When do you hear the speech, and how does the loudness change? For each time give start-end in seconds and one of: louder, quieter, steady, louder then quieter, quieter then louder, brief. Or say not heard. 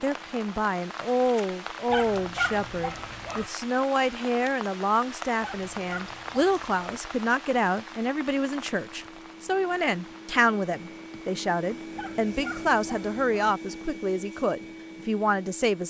0.0-15.8 steady.